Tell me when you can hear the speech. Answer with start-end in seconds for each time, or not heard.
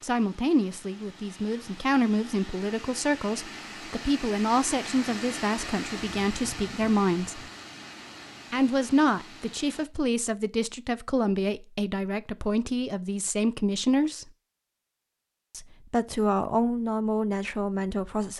0.0-7.4, 8.5-14.2, 15.6-18.3.